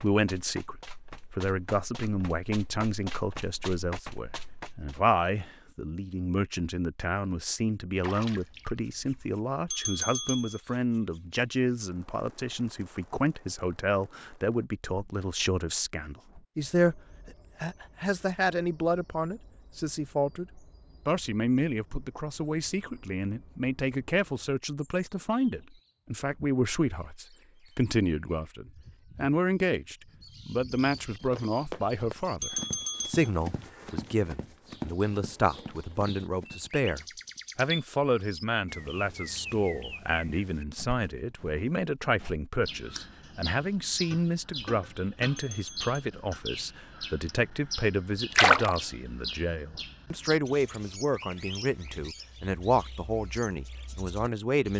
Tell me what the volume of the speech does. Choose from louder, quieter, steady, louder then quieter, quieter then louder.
steady.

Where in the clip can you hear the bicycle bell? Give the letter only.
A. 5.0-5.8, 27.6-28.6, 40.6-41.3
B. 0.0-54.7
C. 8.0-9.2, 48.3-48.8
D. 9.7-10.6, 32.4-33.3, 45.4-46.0
D.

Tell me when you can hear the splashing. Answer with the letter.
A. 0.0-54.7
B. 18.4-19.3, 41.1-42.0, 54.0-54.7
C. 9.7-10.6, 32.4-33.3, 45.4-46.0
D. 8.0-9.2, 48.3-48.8
D.